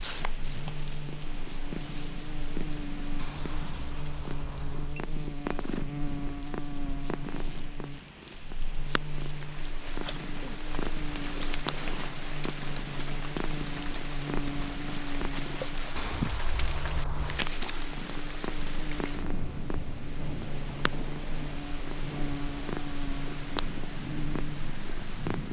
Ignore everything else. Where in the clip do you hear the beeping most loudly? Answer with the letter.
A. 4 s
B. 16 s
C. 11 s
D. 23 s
B.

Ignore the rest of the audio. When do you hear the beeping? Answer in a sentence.
You can hear the beeping from 3.1 to 5.0 s and from 15.9 to 17.4 s.